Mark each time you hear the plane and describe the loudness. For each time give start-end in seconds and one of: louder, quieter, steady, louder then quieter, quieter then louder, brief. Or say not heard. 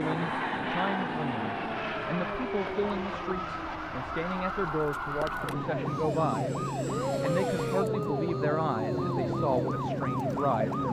0.0-10.8 quieter.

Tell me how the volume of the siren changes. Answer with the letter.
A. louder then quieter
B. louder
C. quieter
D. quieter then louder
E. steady
B.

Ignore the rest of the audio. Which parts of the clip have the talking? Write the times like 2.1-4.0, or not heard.
0.0-6.5, 7.2-10.8.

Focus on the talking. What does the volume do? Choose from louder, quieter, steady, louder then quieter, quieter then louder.
steady.